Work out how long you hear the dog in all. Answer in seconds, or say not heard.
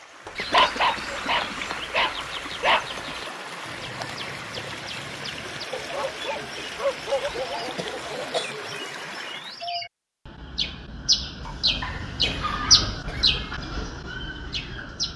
7 s.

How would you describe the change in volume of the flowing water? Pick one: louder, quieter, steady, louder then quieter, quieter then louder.
steady.